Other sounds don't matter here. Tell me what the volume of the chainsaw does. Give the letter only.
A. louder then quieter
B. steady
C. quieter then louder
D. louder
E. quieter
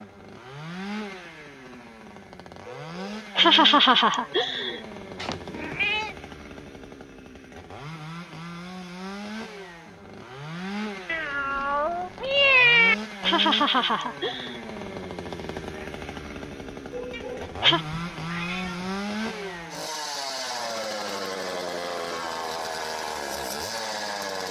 D.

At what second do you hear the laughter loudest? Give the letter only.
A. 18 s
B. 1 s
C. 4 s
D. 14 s
C.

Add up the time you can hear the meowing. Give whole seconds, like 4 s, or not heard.
5 s.